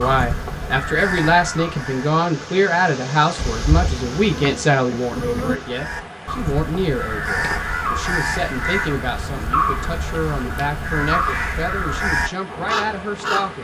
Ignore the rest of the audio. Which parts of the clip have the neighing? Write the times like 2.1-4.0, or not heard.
not heard.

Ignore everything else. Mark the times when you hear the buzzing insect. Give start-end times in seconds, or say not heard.
3.4-5.6.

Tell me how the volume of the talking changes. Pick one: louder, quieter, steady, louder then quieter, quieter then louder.
quieter.